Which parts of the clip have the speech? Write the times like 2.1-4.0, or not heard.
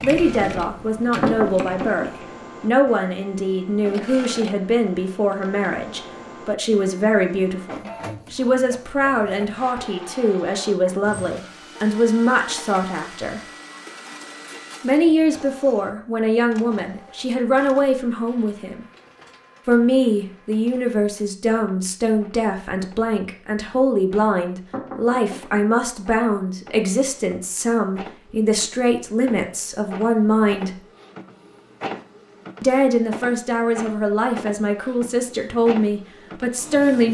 0.0-13.4, 14.8-18.9, 19.6-30.8, 32.6-37.0.